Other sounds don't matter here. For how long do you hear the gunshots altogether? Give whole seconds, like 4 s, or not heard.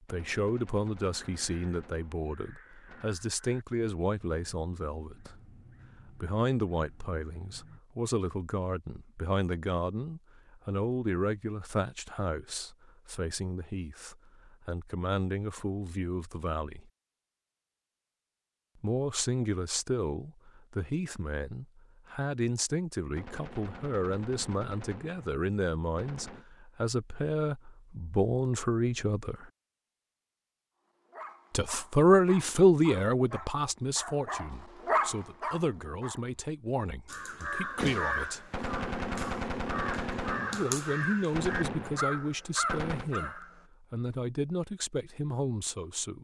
11 s.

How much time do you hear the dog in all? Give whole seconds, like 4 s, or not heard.
5 s.